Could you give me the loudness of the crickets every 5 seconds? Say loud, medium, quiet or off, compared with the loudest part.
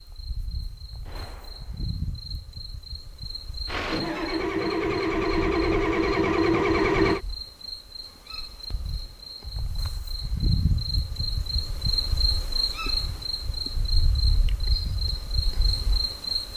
medium, medium, loud, loud.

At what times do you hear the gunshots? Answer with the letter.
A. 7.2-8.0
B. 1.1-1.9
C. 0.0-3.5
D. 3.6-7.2
B.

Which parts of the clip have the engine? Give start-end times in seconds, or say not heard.
3.6-7.2.